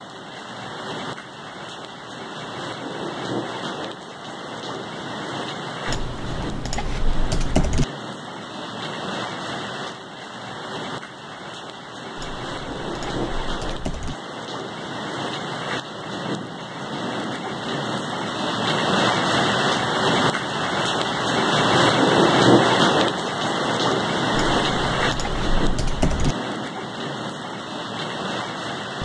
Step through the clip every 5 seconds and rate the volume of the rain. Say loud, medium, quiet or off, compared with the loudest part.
quiet, quiet, quiet, medium, loud, medium.